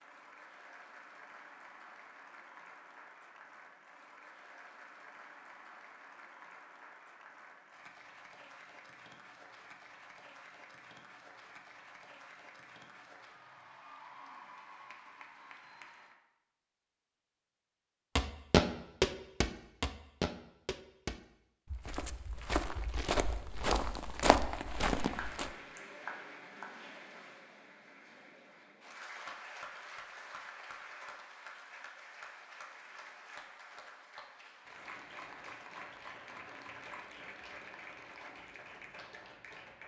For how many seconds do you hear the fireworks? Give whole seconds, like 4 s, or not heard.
not heard.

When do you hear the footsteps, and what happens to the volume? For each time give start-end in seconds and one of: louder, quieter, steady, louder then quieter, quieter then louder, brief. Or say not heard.
18.1-25.5 quieter then louder.